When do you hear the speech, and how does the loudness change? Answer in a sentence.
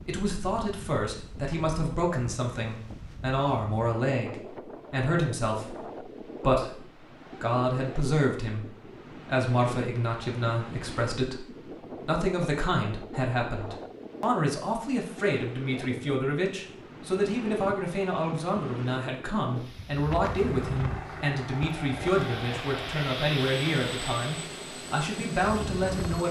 The speech can be heard from 0.1 to 26.2 s, at a steady volume.